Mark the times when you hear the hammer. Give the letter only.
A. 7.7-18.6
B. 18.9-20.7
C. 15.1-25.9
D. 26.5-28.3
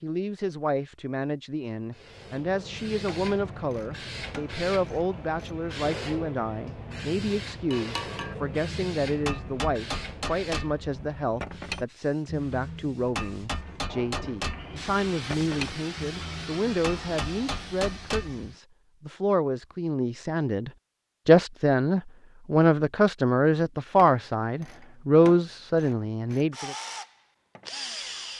A.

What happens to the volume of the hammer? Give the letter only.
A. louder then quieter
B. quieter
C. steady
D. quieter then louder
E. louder
C.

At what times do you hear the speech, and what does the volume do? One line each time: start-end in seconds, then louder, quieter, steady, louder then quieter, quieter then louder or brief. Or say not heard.
0.0-26.8 louder.